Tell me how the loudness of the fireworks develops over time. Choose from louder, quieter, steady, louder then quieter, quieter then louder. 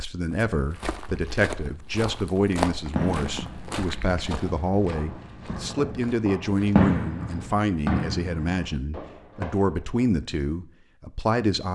louder then quieter.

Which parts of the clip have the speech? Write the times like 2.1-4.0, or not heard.
0.0-11.7.